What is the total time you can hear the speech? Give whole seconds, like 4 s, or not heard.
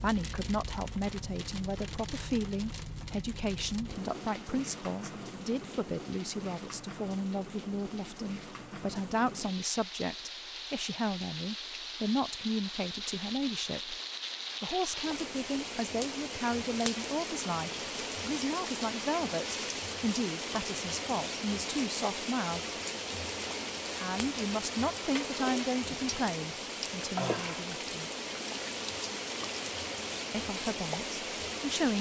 28 s.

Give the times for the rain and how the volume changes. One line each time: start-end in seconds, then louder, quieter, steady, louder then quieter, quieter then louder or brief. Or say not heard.
0.0-31.9 louder.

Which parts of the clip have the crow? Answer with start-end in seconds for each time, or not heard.
not heard.